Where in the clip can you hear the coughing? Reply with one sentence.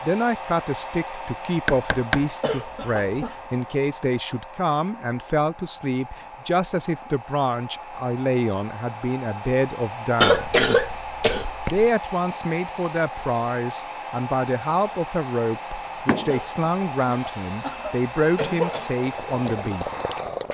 The coughing can be heard from 2.4 to 3.4 s, from 10.2 to 11.9 s and from 16.2 to 18.9 s.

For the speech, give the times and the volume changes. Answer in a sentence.
You can hear the speech from 0.0 to 10.6 s, at a steady volume; and from 11.7 to 19.9 s, at a steady volume.